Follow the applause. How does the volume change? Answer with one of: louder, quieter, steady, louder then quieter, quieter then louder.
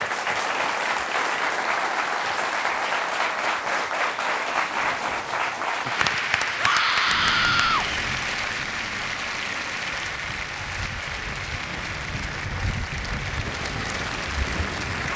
quieter.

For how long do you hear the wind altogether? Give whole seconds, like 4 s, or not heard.
8 s.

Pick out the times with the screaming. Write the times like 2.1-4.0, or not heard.
6.5-7.8.